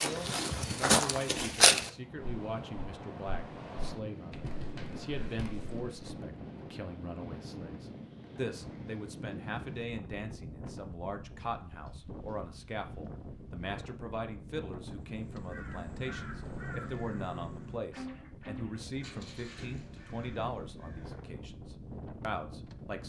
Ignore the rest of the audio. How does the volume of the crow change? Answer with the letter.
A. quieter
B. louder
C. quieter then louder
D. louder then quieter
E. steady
A.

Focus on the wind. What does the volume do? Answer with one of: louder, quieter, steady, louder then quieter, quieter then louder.
steady.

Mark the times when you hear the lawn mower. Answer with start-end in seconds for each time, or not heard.
not heard.